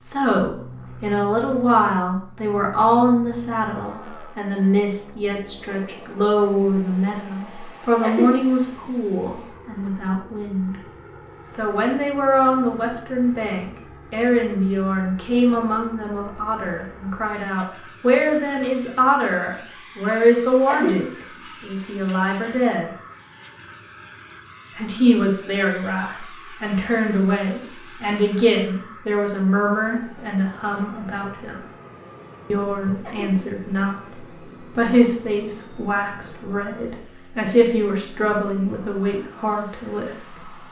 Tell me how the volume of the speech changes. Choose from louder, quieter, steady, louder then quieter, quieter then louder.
steady.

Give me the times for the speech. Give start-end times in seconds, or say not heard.
0.0-10.8, 11.5-22.9, 24.8-31.6, 32.5-40.5.